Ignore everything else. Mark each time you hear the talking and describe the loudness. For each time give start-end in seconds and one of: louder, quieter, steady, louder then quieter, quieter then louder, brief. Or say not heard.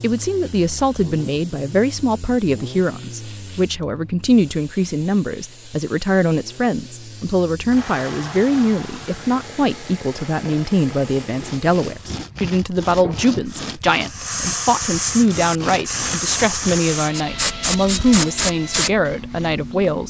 0.0-20.0 steady.